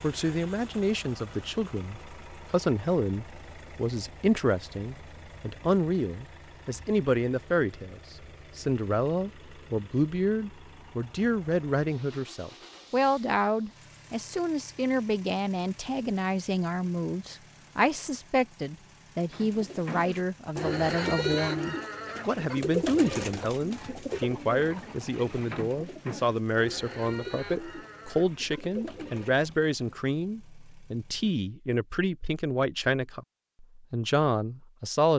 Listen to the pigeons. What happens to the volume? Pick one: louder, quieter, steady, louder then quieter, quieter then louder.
quieter.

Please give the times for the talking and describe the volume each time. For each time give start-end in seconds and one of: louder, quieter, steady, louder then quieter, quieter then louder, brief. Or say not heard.
0.0-35.1 steady.